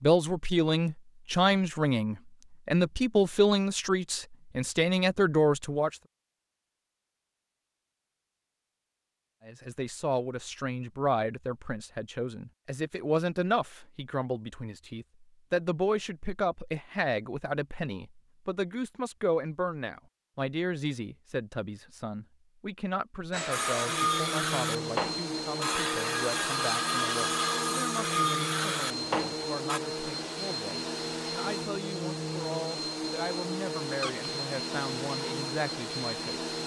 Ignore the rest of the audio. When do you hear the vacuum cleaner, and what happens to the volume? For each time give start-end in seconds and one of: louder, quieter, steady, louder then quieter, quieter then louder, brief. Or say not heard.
23.3-36.6 steady.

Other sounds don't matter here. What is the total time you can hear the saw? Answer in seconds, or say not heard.
6 s.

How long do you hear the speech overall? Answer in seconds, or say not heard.
33 s.